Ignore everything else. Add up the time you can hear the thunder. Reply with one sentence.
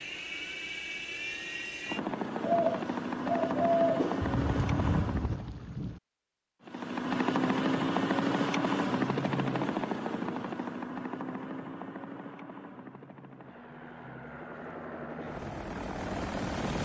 You can hear the thunder for 2 seconds altogether.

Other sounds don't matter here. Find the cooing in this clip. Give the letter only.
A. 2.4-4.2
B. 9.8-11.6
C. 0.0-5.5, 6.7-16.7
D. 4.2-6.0
A.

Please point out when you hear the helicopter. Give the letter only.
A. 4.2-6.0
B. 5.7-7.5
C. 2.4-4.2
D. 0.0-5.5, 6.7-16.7
D.